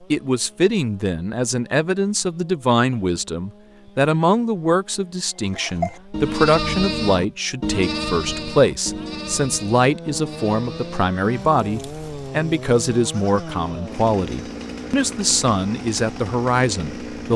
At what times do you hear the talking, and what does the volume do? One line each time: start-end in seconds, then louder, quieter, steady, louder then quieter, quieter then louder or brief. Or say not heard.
0.1-17.3 steady.